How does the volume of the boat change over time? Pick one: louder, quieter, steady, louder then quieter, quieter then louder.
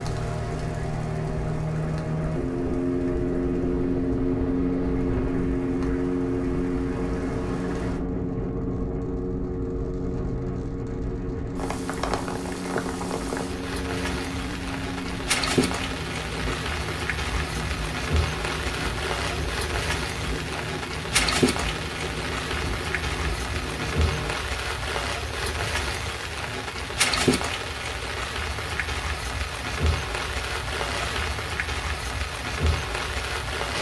quieter.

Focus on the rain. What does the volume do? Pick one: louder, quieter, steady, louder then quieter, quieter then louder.
louder.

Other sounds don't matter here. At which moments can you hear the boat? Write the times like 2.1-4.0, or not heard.
0.0-24.4.